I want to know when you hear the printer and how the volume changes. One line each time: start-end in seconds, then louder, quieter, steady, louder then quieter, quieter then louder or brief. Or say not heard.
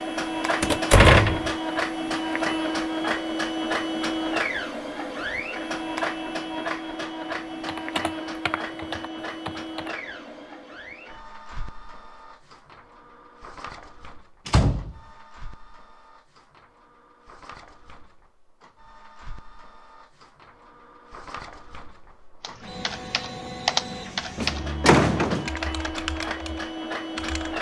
0.0-27.5 quieter then louder.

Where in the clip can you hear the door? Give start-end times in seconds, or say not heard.
0.6-1.5, 14.4-15.0, 24.4-25.5.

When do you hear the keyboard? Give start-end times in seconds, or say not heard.
7.7-9.9, 22.4-24.7, 25.4-27.5.